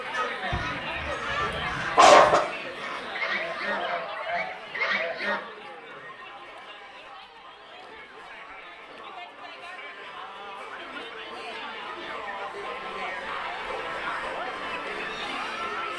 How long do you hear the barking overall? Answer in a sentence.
You can hear the barking for 2 seconds altogether.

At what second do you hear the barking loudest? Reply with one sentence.
The volume of the barking peaks at 2 seconds.